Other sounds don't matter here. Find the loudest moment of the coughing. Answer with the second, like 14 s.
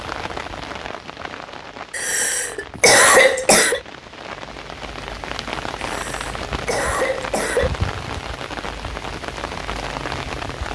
3 s.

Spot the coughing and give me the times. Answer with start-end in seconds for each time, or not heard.
1.9-3.8, 5.8-7.7.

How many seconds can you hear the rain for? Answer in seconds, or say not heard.
11 s.